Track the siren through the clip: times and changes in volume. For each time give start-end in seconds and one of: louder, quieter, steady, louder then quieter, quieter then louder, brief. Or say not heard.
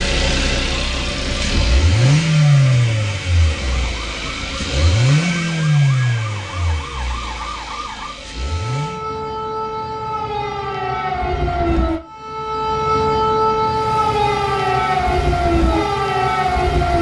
0.0-16.9 louder.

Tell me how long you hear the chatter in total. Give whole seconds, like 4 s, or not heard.
not heard.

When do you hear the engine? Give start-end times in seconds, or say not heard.
0.0-9.1, 13.8-16.9.